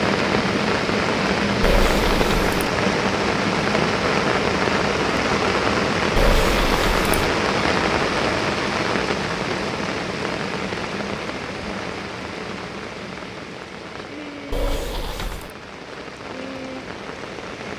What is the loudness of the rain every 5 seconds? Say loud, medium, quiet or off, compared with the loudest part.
loud, loud, medium, quiet.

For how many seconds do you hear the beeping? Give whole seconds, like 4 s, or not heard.
3 s.